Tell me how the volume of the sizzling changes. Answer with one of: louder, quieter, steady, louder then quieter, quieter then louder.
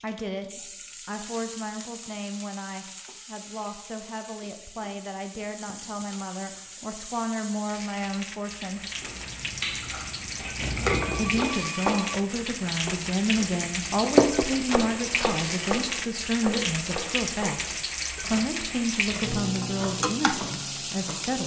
louder.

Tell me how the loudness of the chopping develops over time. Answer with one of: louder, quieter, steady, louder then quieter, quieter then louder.
louder then quieter.